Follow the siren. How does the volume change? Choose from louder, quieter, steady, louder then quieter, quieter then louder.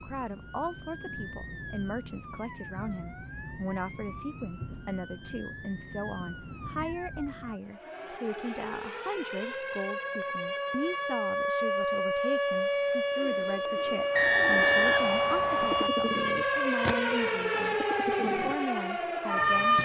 louder.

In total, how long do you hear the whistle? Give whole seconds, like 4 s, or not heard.
2 s.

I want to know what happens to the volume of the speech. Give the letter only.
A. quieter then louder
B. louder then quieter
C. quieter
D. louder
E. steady
E.